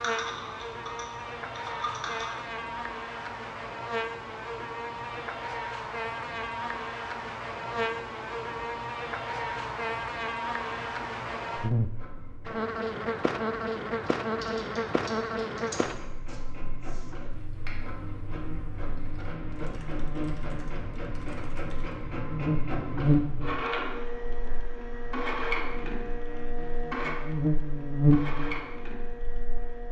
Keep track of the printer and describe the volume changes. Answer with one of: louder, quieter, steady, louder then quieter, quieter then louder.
louder.